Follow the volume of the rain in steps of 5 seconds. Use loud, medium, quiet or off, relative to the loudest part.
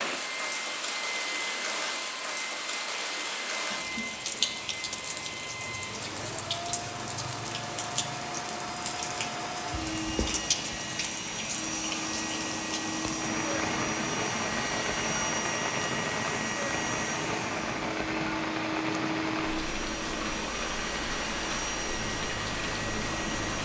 loud, medium, loud, loud, loud.